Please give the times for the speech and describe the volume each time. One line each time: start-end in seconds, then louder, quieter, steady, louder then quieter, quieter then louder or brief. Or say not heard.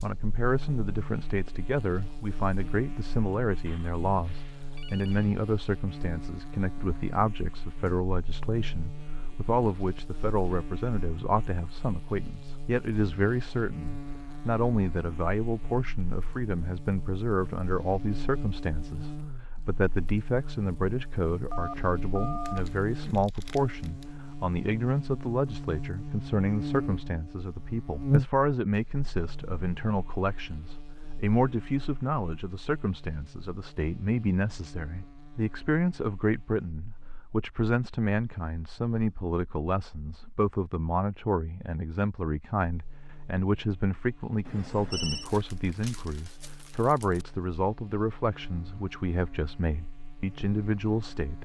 0.0-51.4 steady.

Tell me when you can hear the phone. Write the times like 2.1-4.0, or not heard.
3.6-5.3, 21.5-22.6, 44.5-45.2.